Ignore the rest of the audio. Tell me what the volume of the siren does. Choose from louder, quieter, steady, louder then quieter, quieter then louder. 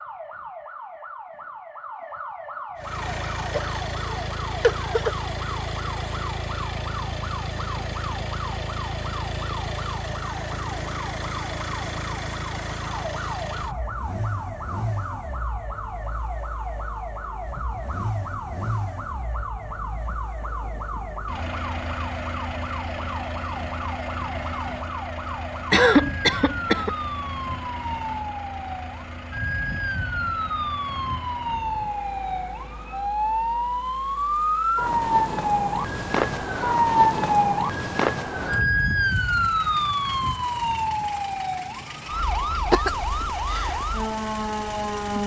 louder.